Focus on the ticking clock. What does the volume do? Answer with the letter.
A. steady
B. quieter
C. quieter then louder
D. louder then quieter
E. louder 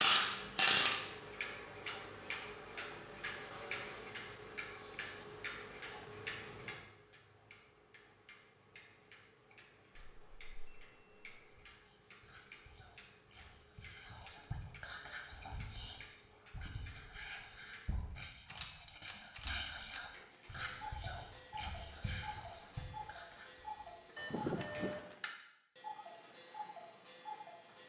C.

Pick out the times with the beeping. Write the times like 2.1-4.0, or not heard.
9.9-11.6, 24.1-25.1.